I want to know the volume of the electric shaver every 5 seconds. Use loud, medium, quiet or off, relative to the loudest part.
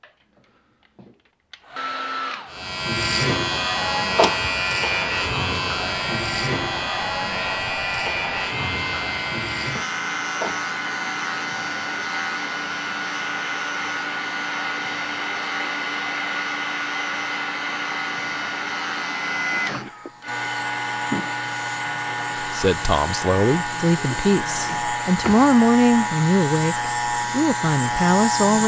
loud, loud, medium, medium, medium, loud.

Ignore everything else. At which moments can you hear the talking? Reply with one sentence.
The talking can be heard from 22.4 to 28.6 s.